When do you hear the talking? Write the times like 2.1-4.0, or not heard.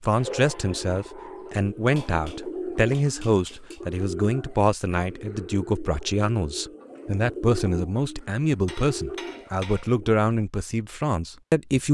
0.0-11.8.